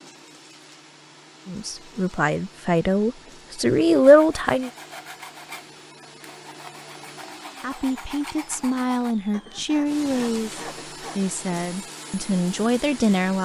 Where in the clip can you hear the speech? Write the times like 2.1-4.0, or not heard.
1.4-4.7, 7.6-13.3.